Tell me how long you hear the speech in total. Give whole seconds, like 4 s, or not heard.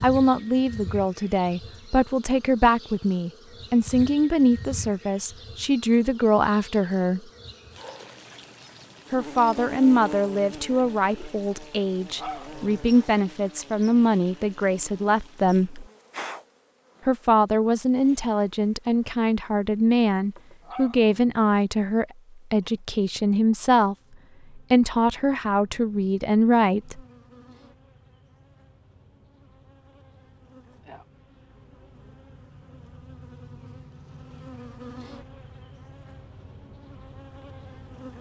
23 s.